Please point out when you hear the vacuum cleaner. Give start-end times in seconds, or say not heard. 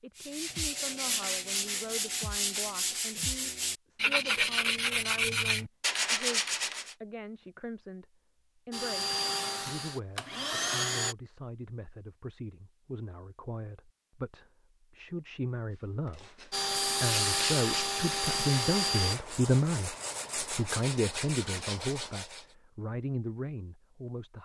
8.7-11.2, 16.5-19.1.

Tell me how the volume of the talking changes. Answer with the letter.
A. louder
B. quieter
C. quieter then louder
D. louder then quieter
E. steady
A.